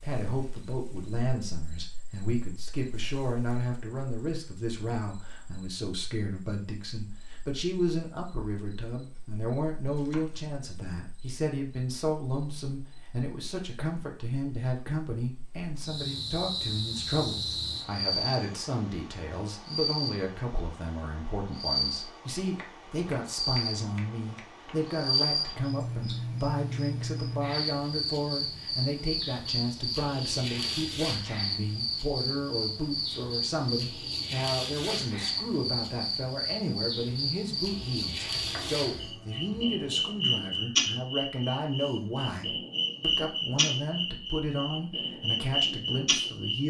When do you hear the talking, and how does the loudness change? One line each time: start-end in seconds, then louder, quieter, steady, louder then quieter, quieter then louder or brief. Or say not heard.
0.0-46.6 steady.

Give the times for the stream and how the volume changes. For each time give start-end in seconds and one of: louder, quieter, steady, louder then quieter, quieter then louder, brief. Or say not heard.
not heard.